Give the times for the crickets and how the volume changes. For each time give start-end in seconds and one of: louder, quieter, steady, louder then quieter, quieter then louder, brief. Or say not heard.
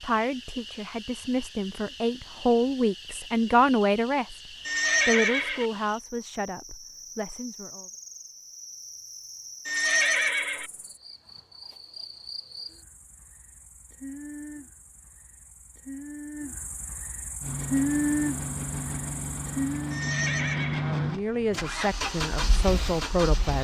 0.0-20.1 louder.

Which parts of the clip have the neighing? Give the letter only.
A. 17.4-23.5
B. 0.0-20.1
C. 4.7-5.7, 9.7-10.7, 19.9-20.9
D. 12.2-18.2
C.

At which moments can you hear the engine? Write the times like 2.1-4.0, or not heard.
17.4-23.5.